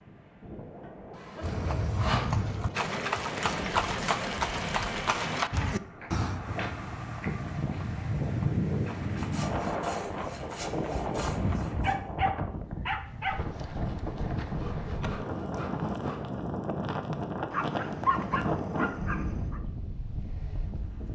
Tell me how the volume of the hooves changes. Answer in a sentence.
The loudness of the hooves goes down.